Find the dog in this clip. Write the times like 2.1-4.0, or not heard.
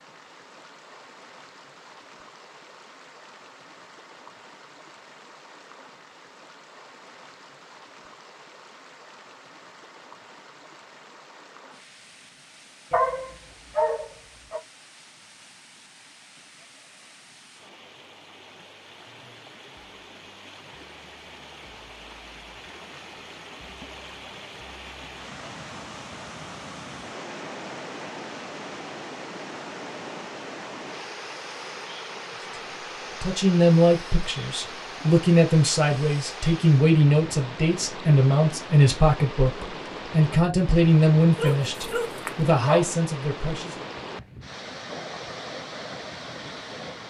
12.9-14.6, 41.4-42.9.